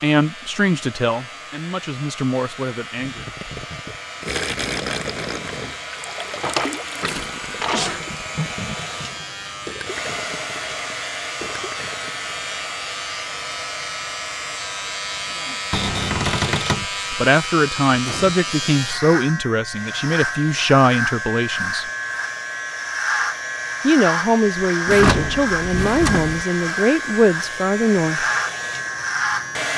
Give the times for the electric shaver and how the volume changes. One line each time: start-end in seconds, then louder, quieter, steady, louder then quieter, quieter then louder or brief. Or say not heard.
0.0-29.7 louder.